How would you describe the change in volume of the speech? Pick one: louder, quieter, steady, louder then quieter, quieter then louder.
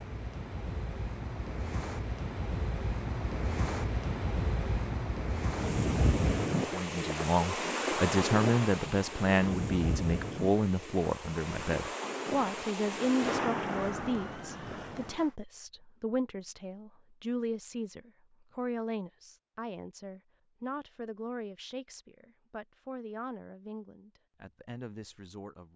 quieter.